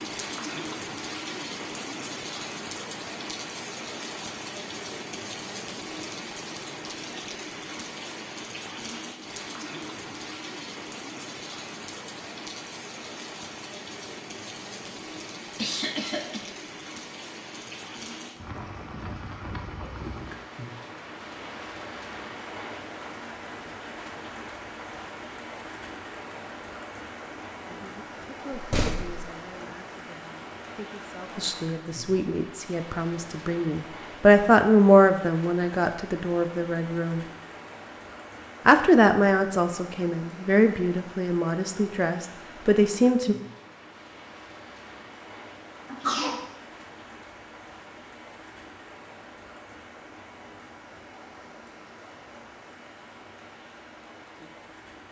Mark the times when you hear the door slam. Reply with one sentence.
The door slam can be heard from 28.5 to 29.2 s.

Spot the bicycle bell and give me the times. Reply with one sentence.
You can't hear the bicycle bell here.